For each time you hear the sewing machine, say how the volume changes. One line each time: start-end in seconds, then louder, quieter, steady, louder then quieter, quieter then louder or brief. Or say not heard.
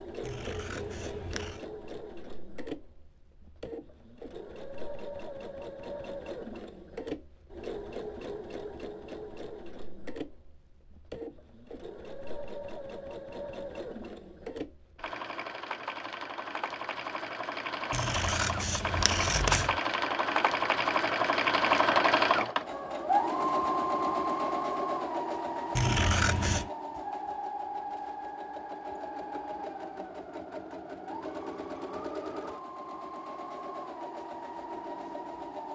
0.0-35.6 louder then quieter.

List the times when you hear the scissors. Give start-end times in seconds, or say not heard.
0.2-1.6, 17.9-19.8, 25.8-26.7.